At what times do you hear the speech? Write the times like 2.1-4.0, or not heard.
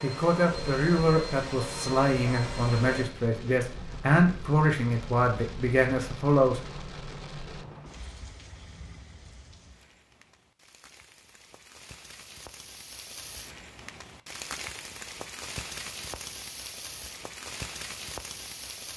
0.0-6.6.